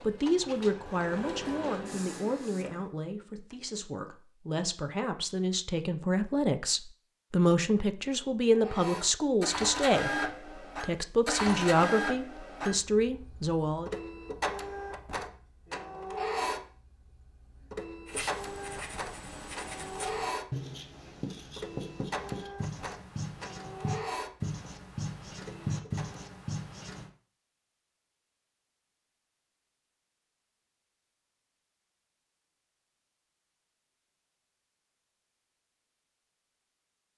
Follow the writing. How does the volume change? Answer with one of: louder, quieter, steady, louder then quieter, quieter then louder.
louder.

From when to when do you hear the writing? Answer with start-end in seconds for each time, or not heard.
18.1-27.1.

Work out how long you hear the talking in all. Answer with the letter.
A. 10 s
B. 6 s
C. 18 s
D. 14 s
D.